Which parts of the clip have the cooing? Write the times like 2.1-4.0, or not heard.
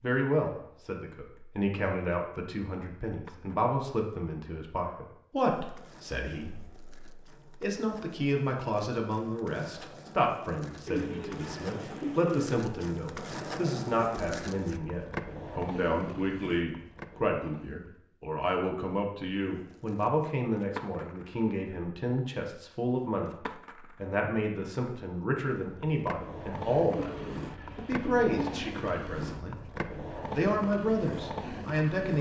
10.8-12.6, 26.9-28.6.